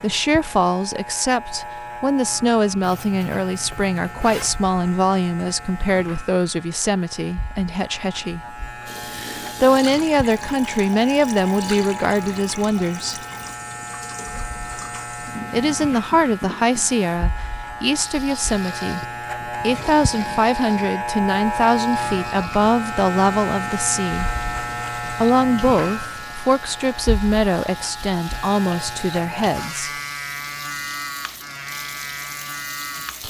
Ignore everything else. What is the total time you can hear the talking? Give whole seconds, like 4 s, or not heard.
27 s.